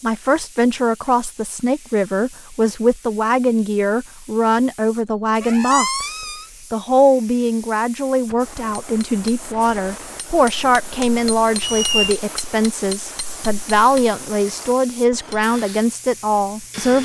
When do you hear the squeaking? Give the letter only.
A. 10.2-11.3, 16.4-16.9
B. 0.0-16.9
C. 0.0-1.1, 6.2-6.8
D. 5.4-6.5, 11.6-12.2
D.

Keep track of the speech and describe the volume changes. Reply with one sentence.
The volume of the speech stays about the same.